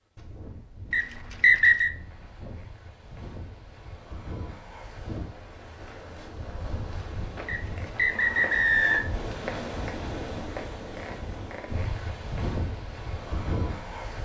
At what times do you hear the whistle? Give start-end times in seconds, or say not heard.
0.9-1.9, 7.5-9.1.